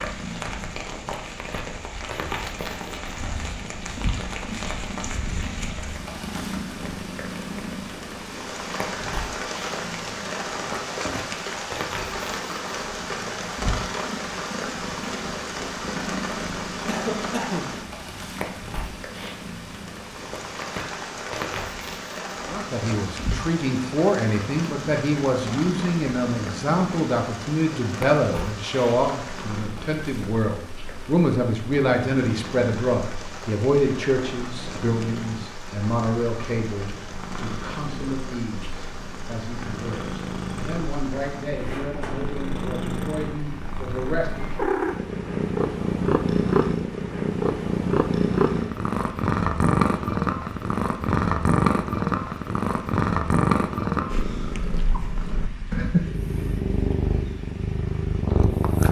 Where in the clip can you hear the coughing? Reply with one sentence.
You can hear the coughing from 16.9 to 17.9 s.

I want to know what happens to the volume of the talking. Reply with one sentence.
The loudness of the talking goes down.